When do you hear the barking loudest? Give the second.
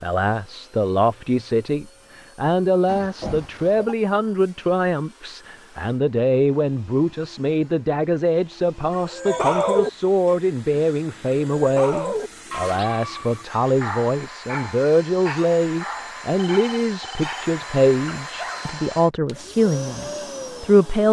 10 s.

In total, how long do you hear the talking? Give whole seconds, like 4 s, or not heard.
21 s.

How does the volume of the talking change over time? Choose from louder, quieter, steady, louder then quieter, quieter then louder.
steady.